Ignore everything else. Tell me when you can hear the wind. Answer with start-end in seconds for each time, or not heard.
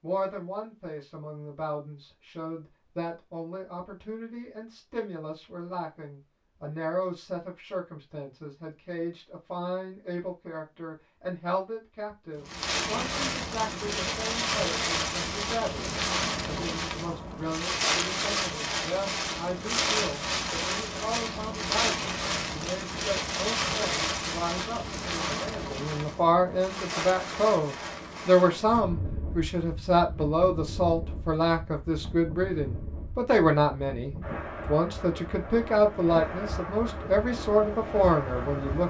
12.4-38.8.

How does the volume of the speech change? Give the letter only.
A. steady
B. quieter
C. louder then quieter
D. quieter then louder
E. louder
E.